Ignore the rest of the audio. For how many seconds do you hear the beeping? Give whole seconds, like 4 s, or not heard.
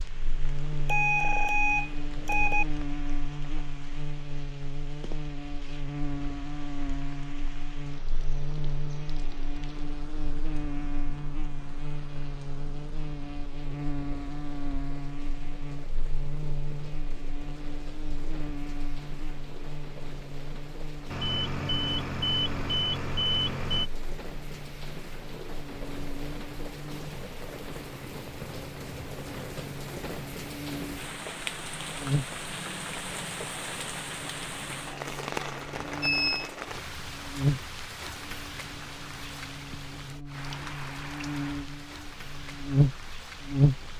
5 s.